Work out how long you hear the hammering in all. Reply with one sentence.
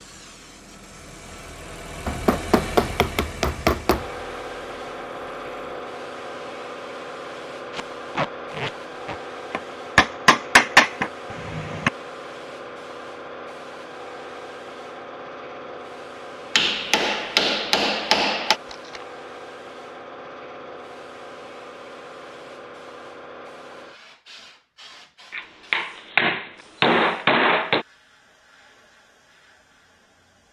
You can hear the hammering for 9 seconds altogether.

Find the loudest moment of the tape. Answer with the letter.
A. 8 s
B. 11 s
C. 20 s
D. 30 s
A.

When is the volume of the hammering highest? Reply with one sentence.
The loudest moment of the hammering is at 11 seconds.